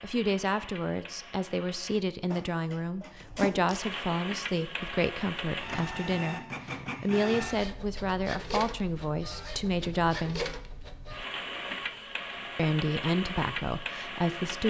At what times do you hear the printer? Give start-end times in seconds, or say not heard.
0.0-14.6.